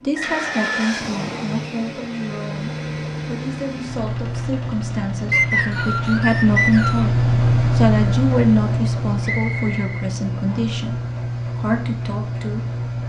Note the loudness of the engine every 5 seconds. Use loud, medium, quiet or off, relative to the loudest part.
medium, loud, medium.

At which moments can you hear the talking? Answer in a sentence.
You can hear the talking from 0.0 to 7.2 s, from 7.8 to 10.9 s and from 11.6 to 12.8 s.